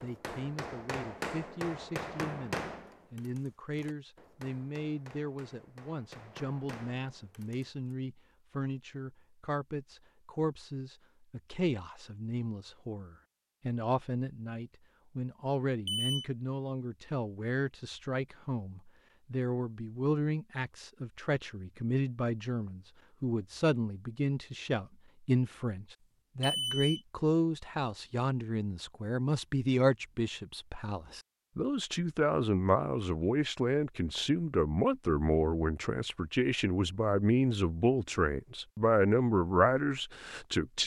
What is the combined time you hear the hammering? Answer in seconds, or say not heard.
8 s.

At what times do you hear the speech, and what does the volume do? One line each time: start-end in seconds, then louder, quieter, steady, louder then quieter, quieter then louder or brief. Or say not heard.
0.0-40.8 louder.